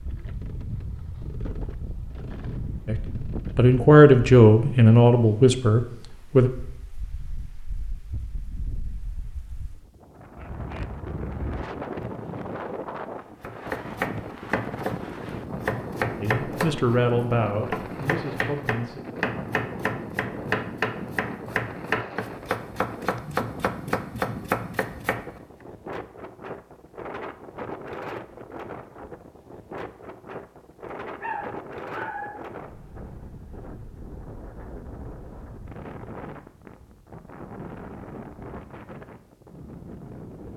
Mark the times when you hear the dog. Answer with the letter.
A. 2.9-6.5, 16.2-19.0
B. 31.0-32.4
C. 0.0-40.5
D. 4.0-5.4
B.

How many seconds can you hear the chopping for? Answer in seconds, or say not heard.
12 s.